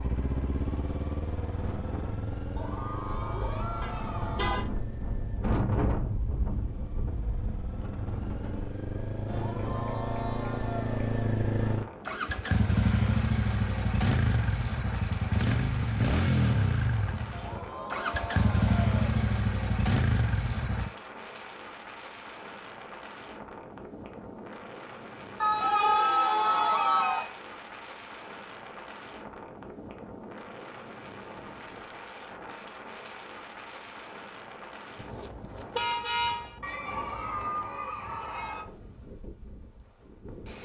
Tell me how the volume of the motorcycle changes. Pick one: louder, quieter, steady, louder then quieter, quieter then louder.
quieter then louder.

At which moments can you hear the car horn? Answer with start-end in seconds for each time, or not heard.
3.8-4.7, 35.0-36.6.